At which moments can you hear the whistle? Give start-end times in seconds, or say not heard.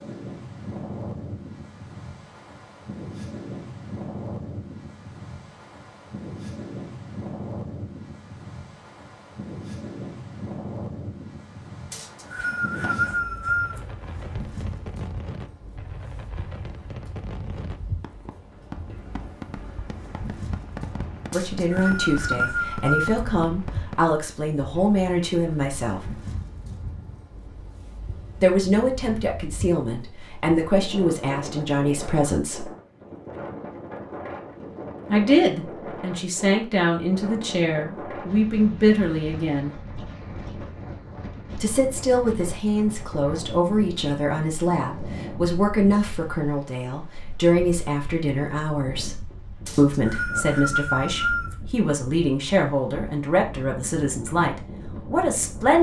11.9-13.8, 21.3-23.2, 49.6-51.5.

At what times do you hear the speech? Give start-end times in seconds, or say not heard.
21.3-26.1, 28.4-32.6, 35.1-39.8, 41.5-55.7.